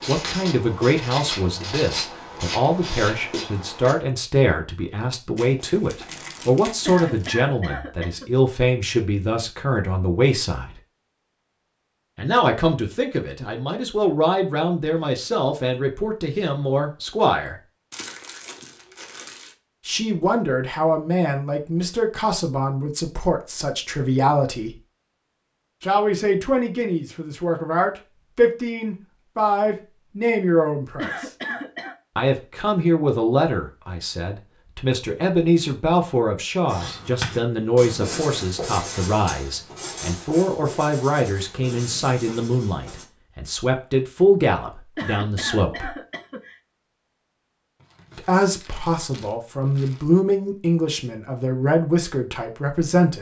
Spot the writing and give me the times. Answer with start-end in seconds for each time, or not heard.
0.0-4.0, 36.6-43.0.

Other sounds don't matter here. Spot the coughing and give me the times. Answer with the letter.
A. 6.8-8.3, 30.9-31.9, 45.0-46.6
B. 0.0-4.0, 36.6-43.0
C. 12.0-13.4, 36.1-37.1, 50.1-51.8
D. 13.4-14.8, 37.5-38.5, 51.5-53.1
A.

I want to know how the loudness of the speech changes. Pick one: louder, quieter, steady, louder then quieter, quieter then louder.
steady.